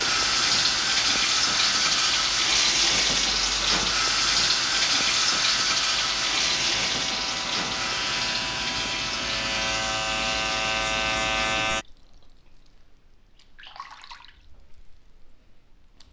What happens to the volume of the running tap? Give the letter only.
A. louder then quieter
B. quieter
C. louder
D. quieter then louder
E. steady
B.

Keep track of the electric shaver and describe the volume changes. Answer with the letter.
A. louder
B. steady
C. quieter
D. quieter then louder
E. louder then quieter
A.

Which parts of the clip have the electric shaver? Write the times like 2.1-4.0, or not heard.
0.0-11.8.